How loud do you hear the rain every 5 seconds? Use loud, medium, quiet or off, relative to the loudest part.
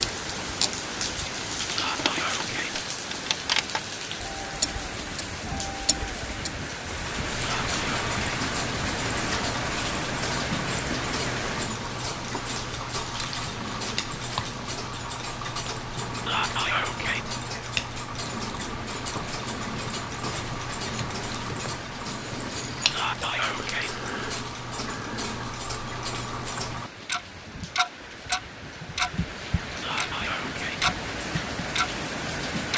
loud, loud, loud, medium, medium, medium, loud.